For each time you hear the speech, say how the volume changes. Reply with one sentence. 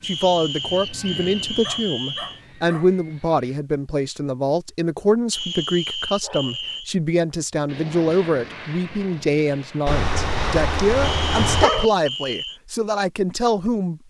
The speech can be heard from 0.1 to 14.0 s, at a steady volume.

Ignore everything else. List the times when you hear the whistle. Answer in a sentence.
The whistle can be heard from 0.0 to 2.4 s, from 5.3 to 6.9 s and from 11.0 to 12.6 s.